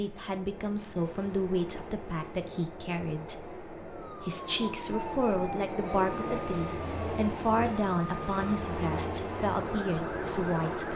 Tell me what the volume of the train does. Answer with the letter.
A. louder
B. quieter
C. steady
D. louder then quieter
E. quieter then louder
A.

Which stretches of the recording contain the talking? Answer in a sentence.
You can hear the talking from 0.0 to 10.9 s.